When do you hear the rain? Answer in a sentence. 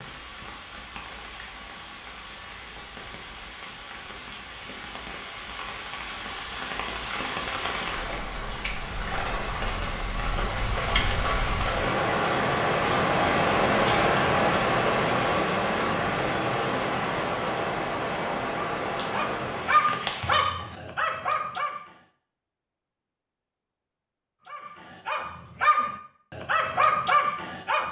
The rain can be heard from 0.0 to 20.5 s.